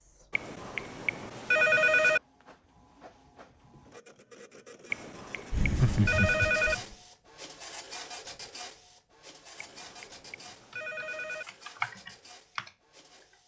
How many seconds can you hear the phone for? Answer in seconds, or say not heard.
6 s.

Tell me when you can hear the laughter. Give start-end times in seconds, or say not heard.
5.5-7.0.